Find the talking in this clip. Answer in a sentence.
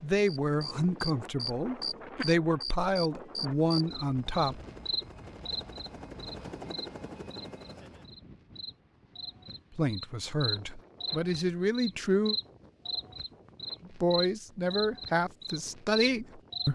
The talking can be heard from 0.0 to 4.6 s, from 9.8 to 12.3 s and from 13.8 to 16.6 s.